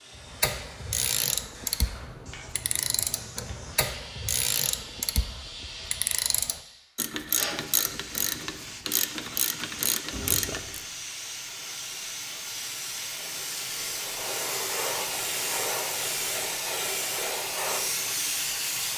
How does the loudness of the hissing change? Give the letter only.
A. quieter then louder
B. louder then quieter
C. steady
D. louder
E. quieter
D.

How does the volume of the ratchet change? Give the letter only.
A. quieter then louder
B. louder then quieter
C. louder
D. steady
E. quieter
D.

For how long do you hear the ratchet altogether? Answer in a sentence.
The ratchet can be heard for 11 seconds in total.